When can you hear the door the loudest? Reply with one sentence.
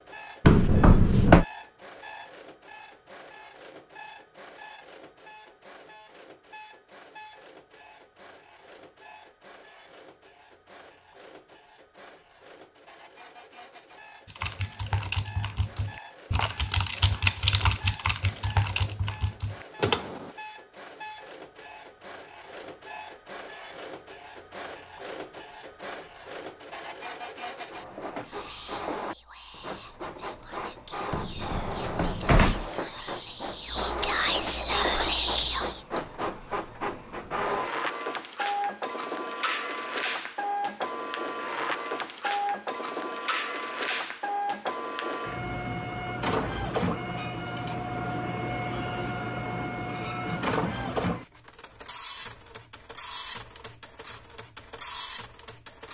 The volume of the door peaks at 1 second.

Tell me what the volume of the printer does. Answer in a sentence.
The loudness of the printer goes up.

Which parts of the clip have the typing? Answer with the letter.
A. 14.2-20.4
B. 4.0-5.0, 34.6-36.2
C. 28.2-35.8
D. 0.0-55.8
A.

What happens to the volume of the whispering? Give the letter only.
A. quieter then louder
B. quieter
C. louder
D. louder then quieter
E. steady
C.